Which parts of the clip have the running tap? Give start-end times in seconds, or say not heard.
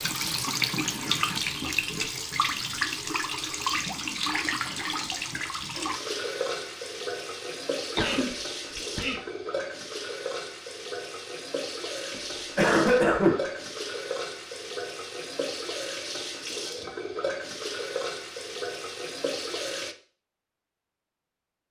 0.0-19.9.